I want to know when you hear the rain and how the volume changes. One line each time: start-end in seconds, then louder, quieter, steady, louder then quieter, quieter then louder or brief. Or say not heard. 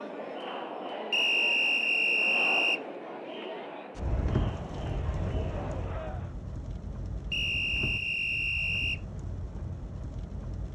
4.0-10.7 quieter.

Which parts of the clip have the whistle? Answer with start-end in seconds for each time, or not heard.
1.1-2.8, 7.3-9.0.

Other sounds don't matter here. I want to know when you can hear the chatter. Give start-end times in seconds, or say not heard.
0.0-6.3.